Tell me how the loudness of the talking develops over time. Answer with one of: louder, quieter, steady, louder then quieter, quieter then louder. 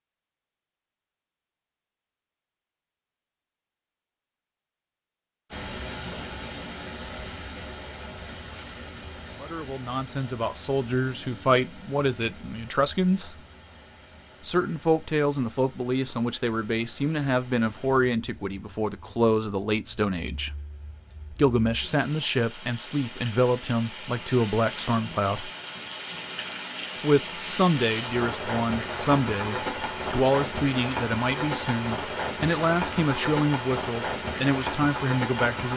steady.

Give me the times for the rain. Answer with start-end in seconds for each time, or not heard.
5.5-35.7.